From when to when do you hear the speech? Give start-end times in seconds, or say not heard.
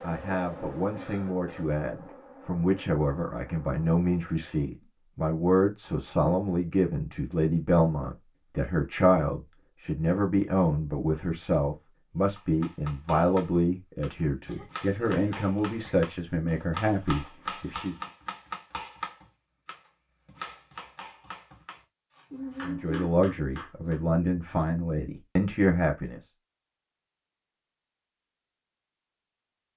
0.0-17.9, 22.6-26.2.